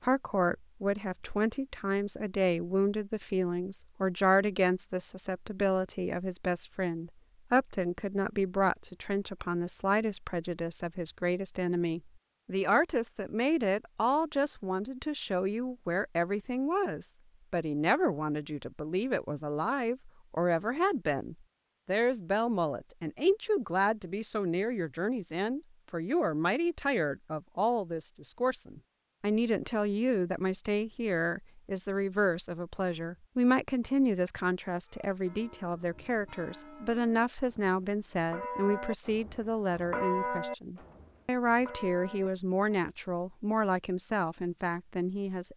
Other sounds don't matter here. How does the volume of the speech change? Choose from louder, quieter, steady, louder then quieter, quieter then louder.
steady.